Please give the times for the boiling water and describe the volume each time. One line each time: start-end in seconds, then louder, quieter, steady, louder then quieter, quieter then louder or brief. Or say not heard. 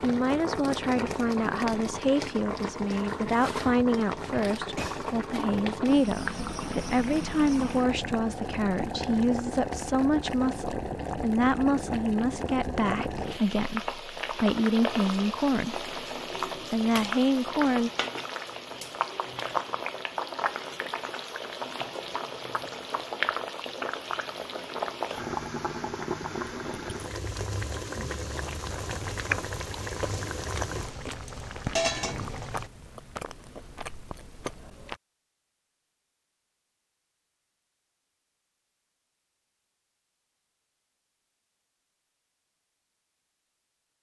0.0-32.7 steady.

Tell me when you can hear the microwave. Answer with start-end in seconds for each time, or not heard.
not heard.